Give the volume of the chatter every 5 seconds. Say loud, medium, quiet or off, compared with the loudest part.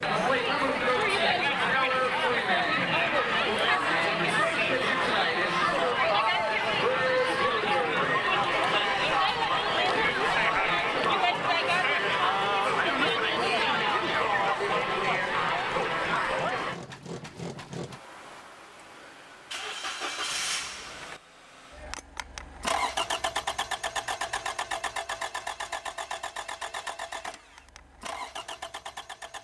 loud, loud, loud, loud, off, off.